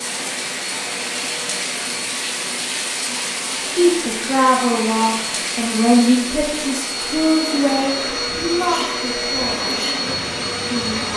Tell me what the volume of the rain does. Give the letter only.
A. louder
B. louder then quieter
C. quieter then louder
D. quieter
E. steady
D.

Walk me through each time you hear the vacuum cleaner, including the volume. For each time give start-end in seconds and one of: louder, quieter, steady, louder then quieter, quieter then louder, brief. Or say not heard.
0.0-11.1 louder.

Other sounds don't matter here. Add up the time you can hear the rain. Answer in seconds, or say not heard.
11 s.